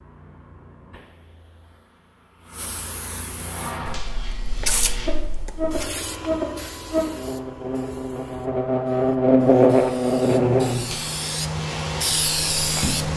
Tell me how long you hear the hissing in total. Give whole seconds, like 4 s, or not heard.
13 s.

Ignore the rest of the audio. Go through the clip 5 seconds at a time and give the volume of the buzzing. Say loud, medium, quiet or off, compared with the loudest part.
quiet, loud, loud.